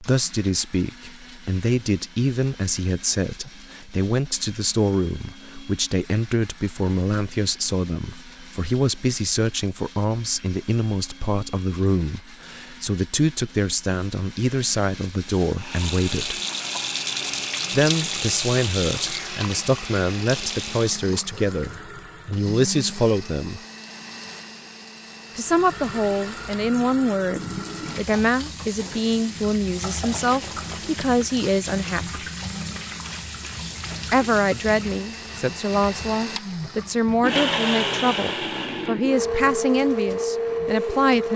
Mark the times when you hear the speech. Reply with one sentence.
The speech can be heard from 0.0 to 16.4 s, from 17.7 to 23.6 s, from 25.4 to 32.2 s and from 34.1 to 41.3 s.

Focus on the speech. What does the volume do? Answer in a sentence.
The volume of the speech stays about the same.